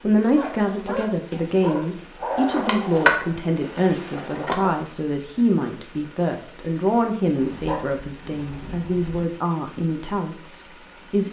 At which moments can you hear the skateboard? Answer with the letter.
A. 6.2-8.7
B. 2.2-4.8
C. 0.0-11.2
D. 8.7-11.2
B.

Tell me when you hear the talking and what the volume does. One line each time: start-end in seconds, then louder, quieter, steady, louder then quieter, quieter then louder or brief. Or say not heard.
0.0-11.2 steady.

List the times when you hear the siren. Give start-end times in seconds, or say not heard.
not heard.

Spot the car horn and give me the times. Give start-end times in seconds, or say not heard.
not heard.